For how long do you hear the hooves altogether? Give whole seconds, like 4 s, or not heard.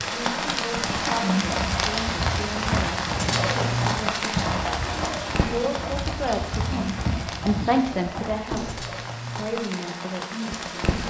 8 s.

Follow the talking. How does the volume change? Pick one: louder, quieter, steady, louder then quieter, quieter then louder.
louder then quieter.